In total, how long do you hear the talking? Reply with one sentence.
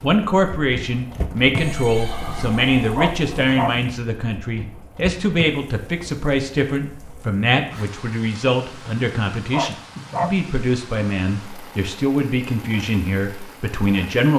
The talking can be heard for 14 seconds in total.